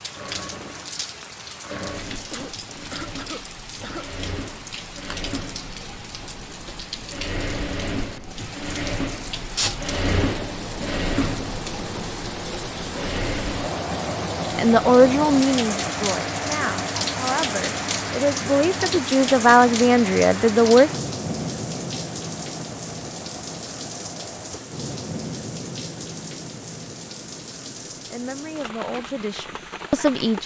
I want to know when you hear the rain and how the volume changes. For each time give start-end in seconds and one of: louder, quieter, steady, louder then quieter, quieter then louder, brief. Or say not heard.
0.0-30.4 louder then quieter.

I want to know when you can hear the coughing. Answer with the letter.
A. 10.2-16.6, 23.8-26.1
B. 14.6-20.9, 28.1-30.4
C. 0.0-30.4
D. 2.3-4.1
D.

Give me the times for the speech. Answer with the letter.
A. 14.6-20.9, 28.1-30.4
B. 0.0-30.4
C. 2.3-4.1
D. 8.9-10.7
A.